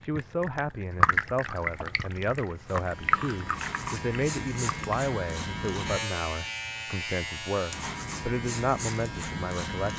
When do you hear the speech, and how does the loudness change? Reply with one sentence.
The speech can be heard from 0.0 to 9.9 s, at a steady volume.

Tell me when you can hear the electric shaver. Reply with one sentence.
You can hear the electric shaver from 2.5 to 9.9 s.